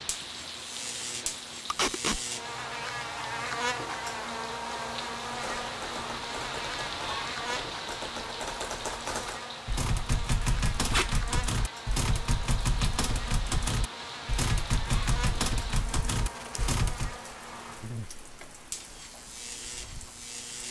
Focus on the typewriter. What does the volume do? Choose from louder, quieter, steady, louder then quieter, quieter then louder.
louder.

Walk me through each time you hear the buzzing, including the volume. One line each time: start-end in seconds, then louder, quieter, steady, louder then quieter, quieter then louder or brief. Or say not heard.
0.0-20.6 quieter.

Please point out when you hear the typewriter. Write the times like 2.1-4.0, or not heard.
5.3-17.1.